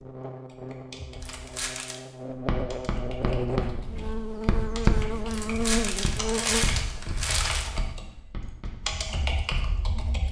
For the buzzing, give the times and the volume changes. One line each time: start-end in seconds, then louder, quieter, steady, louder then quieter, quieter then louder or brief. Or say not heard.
0.0-6.7 louder.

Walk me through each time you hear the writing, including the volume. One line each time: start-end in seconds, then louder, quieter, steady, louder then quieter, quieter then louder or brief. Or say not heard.
2.2-9.8 louder then quieter.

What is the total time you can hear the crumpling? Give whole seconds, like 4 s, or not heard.
3 s.